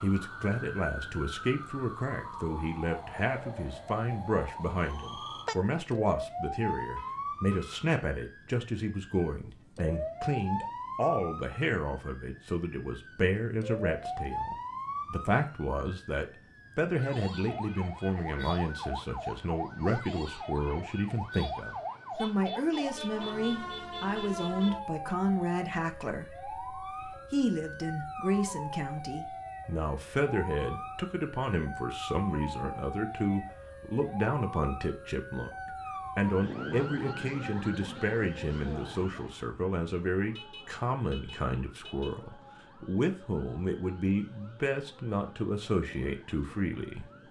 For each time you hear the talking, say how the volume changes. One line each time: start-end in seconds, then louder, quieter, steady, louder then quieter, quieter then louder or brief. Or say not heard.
0.0-47.1 steady.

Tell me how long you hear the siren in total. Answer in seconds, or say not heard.
47 s.